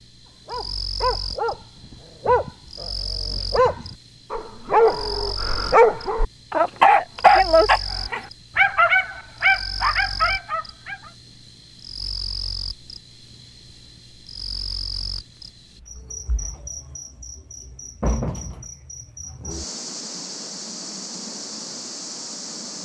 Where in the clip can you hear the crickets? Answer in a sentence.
You can hear the crickets from 0.0 to 22.7 s.